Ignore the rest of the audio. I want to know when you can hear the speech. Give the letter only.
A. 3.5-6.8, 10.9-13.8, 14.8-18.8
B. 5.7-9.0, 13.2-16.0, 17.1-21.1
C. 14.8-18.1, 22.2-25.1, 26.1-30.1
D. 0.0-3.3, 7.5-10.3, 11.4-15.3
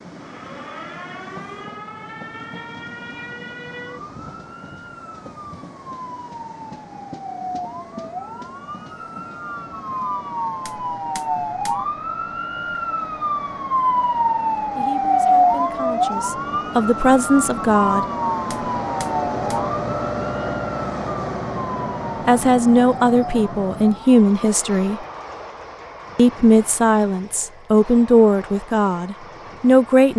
C.